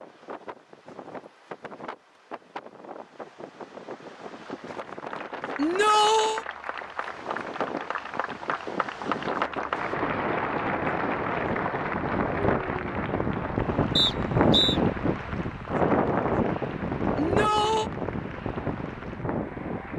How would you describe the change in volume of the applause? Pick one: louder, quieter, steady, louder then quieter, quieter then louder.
louder then quieter.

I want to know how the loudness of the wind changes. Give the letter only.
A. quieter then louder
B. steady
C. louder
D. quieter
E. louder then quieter
C.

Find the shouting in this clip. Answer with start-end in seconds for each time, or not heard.
5.5-6.5, 17.1-17.9.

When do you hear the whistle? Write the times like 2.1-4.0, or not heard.
13.9-14.8.